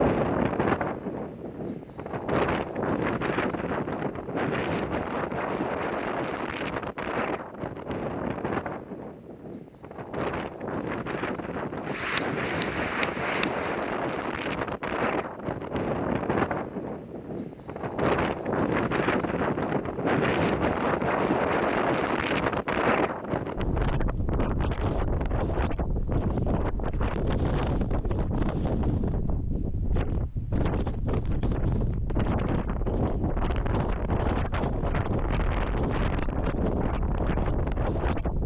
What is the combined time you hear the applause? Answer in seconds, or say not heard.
2 s.